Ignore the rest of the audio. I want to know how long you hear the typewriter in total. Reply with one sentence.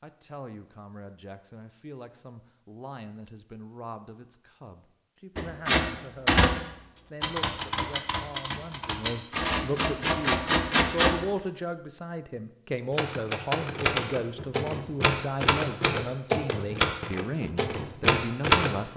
The typewriter can be heard for 12 seconds in total.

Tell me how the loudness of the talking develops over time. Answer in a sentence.
The volume of the talking goes up.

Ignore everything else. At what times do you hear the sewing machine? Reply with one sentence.
You can't hear the sewing machine here.